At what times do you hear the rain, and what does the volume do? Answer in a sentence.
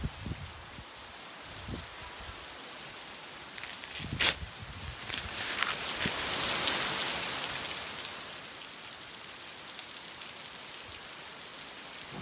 The rain can be heard from 0.0 to 12.1 s, getting louder then quieter.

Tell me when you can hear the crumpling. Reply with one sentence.
You can hear the crumpling from 3.5 to 6.2 s.